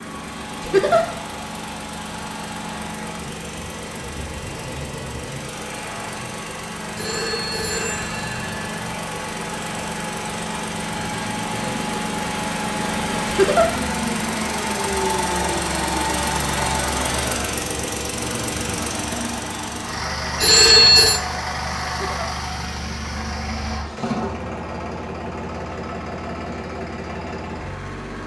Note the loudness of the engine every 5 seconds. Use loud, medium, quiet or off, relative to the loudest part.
medium, medium, loud, loud, loud, medium.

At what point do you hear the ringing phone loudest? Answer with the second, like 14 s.
21 s.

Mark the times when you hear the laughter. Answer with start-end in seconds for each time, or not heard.
0.6-1.1, 13.2-13.7, 21.9-22.4.